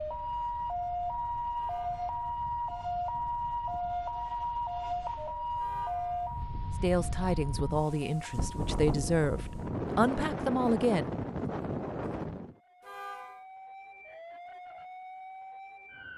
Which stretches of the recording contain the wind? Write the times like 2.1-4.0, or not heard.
0.0-12.6.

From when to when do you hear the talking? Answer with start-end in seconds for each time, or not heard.
6.7-11.1.